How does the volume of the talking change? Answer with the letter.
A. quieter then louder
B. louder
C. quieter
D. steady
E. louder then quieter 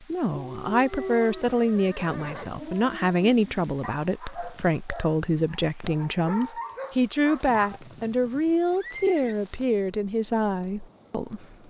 D.